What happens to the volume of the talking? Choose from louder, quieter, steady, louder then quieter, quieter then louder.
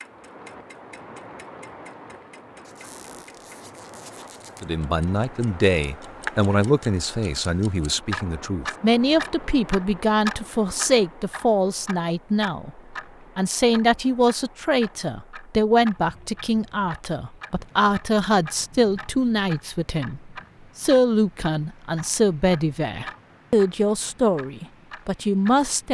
steady.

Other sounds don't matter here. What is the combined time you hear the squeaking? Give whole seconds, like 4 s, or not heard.
2 s.